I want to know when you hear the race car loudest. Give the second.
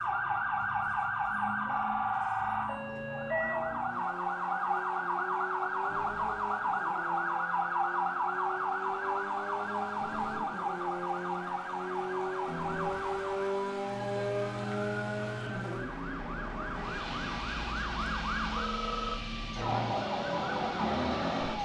14 s.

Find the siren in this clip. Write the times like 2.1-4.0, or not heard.
0.0-21.6.